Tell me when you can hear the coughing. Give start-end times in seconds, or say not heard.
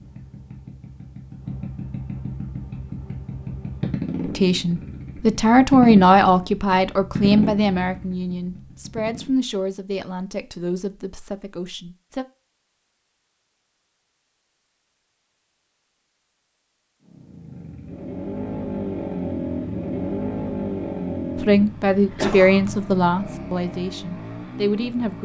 22.1-22.6.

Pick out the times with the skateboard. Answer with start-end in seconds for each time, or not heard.
not heard.